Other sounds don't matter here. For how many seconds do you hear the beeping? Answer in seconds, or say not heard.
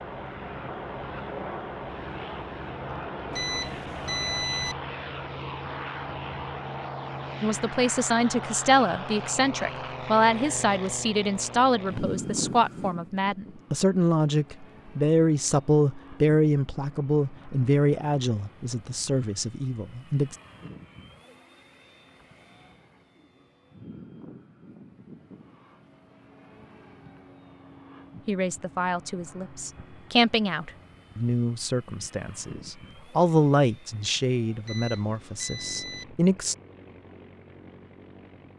3 s.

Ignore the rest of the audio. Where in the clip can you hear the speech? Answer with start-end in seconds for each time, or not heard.
7.4-20.4, 28.2-36.5.